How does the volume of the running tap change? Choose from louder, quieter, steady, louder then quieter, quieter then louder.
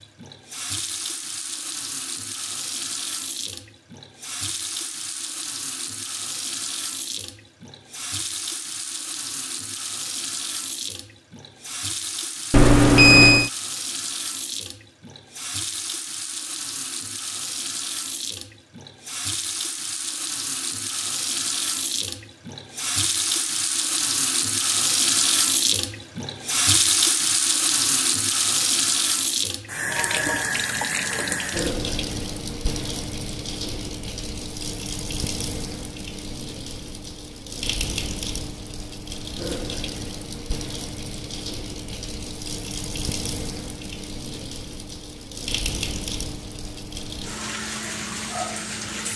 louder then quieter.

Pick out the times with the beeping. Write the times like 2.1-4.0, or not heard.
12.5-13.5.